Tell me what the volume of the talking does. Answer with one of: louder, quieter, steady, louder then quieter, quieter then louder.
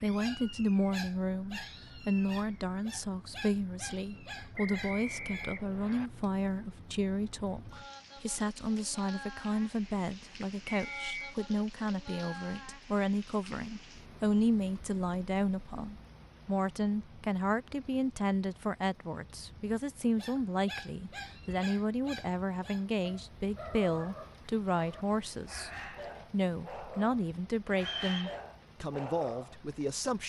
steady.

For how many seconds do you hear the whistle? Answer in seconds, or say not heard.
3 s.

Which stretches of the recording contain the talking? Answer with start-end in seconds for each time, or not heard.
0.0-30.2.